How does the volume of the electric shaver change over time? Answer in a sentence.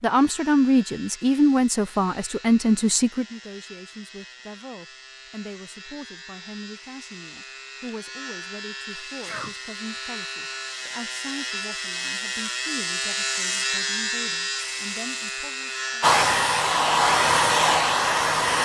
The loudness of the electric shaver goes up.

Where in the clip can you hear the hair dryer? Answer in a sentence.
You can hear the hair dryer from 16.0 to 18.5 s.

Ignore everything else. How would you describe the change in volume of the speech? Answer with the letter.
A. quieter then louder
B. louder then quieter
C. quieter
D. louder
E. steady
C.